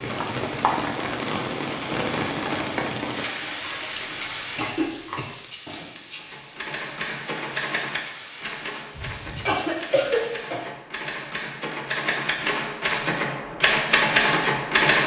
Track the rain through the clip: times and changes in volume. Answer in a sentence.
You can hear the rain from 0.0 to 10.4 s, getting quieter.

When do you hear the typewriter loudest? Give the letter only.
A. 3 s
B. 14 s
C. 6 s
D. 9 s
B.